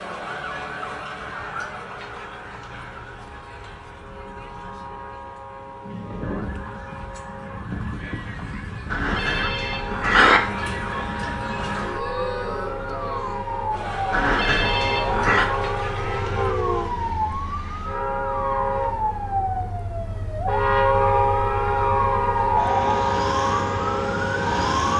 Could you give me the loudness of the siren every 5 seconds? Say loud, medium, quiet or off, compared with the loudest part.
quiet, medium, medium, loud, loud.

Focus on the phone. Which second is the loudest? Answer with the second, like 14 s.
10 s.